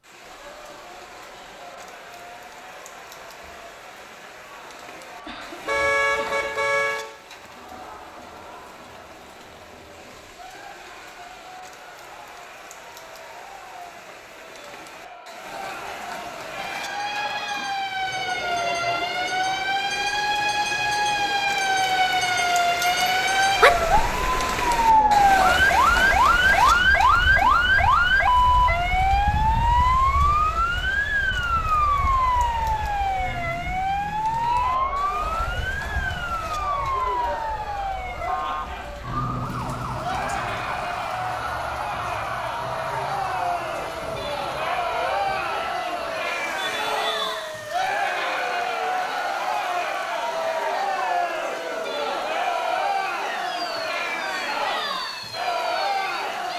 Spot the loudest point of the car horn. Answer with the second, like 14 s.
6 s.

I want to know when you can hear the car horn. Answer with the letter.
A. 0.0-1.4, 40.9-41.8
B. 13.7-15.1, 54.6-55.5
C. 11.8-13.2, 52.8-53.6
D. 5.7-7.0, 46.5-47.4
D.